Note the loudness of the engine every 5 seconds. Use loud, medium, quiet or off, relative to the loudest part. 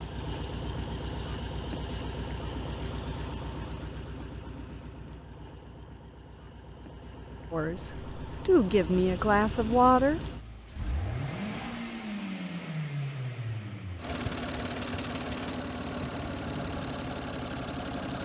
loud, medium, loud, loud.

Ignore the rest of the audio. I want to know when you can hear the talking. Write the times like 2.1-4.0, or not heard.
7.5-10.2.